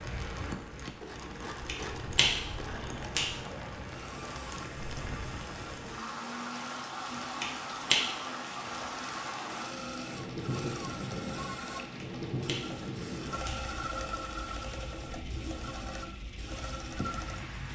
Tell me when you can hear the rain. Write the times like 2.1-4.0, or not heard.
0.0-17.7.